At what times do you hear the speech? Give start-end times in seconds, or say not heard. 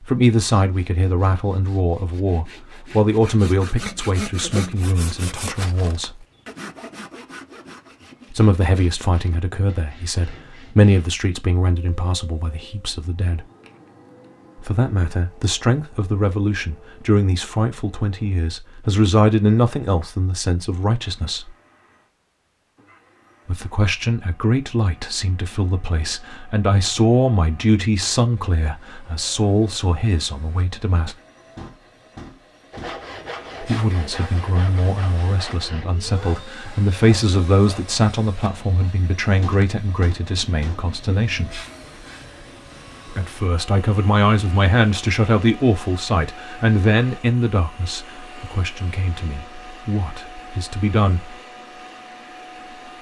0.1-6.1, 8.3-13.4, 14.6-21.5, 23.4-31.1, 33.6-41.6, 43.1-51.2.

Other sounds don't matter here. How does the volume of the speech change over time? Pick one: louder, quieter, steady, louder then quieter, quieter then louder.
steady.